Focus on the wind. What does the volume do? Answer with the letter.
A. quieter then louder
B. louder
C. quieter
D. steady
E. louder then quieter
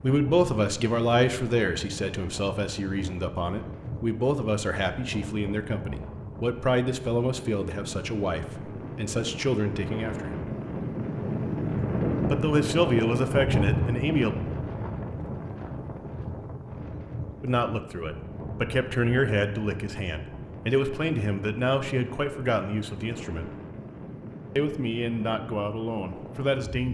E.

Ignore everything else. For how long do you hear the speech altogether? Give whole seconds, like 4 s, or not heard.
21 s.